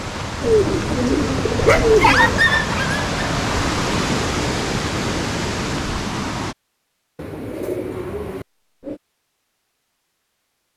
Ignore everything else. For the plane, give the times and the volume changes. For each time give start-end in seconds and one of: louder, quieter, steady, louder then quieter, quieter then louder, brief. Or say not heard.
not heard.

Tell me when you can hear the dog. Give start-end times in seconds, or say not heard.
1.6-3.0.